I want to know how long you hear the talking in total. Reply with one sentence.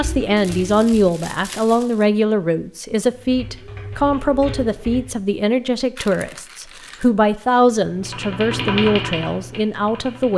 You can hear the talking for 10 seconds altogether.